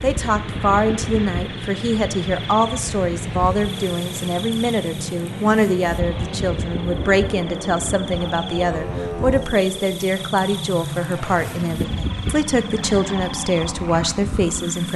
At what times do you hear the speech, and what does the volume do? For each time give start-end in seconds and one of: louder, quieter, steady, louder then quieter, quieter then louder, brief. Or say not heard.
0.0-14.9 steady.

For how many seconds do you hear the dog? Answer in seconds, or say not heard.
not heard.